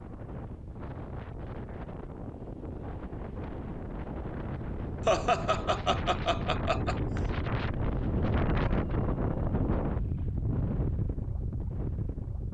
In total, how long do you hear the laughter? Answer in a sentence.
The laughter can be heard for 2 seconds in total.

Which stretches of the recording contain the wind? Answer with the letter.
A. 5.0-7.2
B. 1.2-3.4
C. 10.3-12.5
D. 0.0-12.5
D.